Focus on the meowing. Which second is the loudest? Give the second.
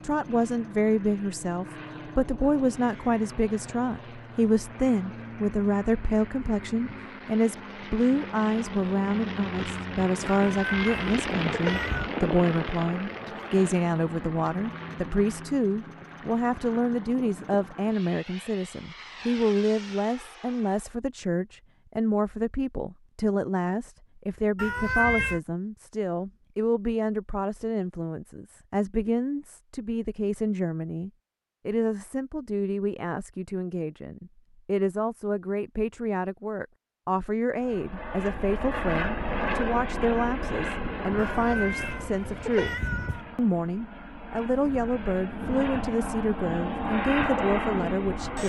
25 s.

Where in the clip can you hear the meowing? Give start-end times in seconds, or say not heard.
10.3-12.1, 24.6-25.4, 41.1-43.3.